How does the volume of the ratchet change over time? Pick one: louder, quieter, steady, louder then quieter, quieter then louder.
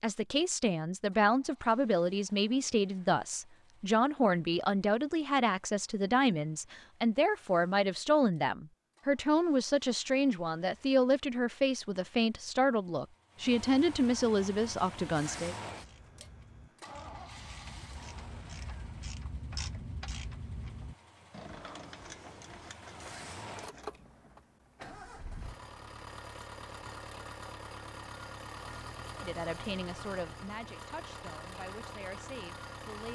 louder then quieter.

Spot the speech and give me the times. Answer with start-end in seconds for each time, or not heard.
0.0-15.6, 29.2-33.0.